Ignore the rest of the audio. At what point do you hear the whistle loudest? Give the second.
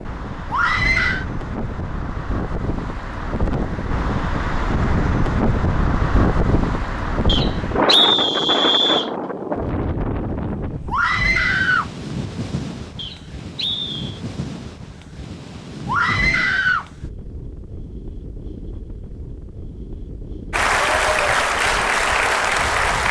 8 s.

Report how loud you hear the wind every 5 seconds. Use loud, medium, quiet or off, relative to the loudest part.
medium, loud, medium, quiet, quiet.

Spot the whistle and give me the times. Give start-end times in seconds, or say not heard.
7.2-9.1, 12.9-14.2.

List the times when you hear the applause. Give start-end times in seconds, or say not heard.
20.5-23.0.